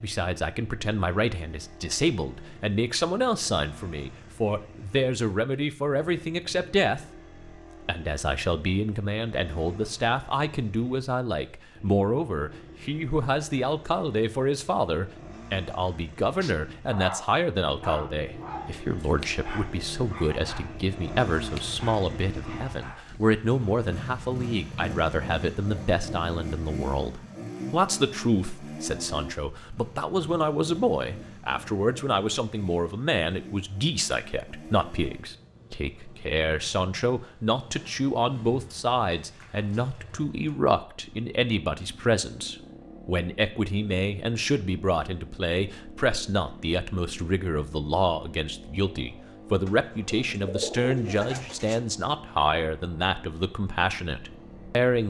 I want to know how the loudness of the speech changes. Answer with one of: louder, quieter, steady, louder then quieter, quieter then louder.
steady.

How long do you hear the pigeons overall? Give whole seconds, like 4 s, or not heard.
2 s.